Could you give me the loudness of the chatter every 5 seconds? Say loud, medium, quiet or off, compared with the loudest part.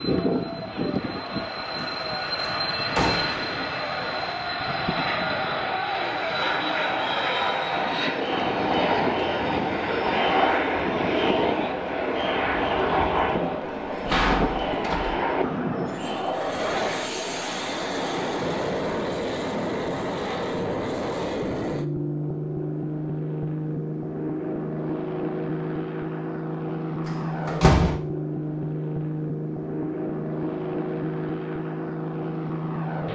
medium, loud, loud, medium, off, off, off.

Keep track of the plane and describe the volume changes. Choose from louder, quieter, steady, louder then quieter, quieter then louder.
steady.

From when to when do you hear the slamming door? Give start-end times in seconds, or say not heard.
1.8-3.5, 13.7-15.2, 27.1-27.9.